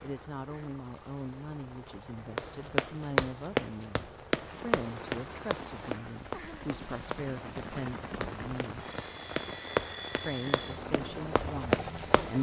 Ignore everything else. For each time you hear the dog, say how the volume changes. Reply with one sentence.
The dog can't be heard in this clip.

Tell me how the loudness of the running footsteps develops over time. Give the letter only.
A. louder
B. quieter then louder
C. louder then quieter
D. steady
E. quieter
B.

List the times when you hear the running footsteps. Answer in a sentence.
You can hear the running footsteps from 2.4 to 12.3 s.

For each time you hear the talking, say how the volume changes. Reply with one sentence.
You can hear the talking from 0.0 to 8.8 s, at a steady volume; and briefly from 10.2 to 12.3 s.